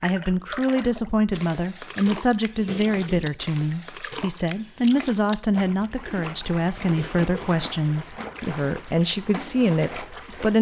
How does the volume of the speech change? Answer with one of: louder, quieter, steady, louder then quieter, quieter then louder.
steady.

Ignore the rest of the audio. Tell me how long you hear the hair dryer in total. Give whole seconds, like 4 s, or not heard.
not heard.